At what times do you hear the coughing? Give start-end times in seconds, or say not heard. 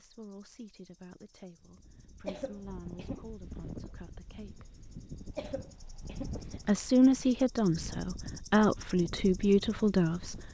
2.2-3.2, 5.3-6.3.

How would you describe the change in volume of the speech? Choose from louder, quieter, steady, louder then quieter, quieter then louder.
louder.